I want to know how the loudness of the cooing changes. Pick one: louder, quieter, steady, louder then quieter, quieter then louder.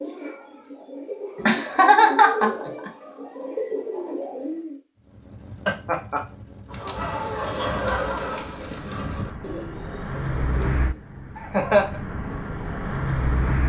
louder then quieter.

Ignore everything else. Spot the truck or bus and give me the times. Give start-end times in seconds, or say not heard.
5.0-13.6.